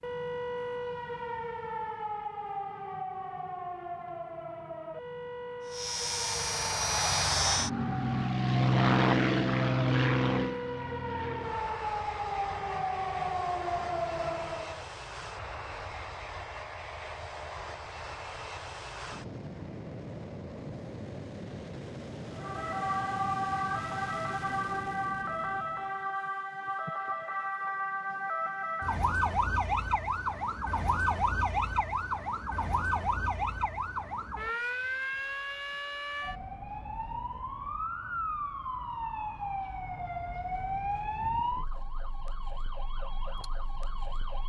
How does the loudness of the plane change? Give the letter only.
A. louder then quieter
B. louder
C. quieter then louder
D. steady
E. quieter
E.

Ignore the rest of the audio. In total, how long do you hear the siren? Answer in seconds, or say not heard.
37 s.